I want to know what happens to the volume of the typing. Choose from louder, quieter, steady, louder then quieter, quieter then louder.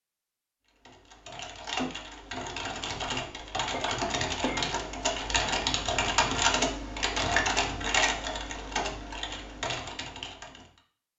louder then quieter.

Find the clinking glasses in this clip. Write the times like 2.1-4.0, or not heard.
3.7-4.8.